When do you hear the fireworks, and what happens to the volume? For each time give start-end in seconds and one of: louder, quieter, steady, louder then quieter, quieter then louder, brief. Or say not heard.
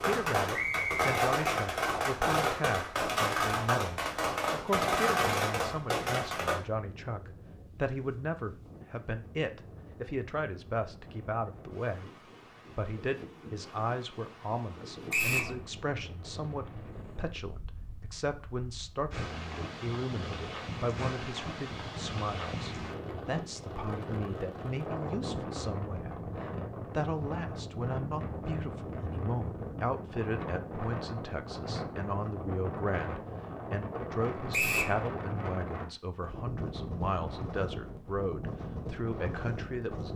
0.0-6.6 steady.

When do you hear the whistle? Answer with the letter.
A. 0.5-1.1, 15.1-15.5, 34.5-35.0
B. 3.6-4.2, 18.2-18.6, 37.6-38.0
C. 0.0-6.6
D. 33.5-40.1
A.